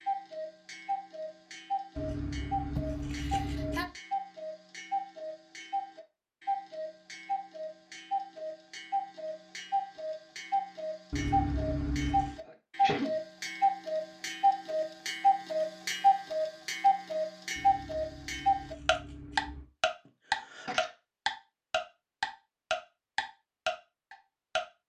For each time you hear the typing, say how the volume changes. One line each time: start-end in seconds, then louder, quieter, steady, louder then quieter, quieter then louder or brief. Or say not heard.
not heard.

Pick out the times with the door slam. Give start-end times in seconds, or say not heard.
not heard.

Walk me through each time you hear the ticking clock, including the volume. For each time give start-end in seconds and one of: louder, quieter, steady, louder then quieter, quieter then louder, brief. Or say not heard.
0.0-24.6 louder.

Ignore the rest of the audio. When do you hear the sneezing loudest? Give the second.
13 s.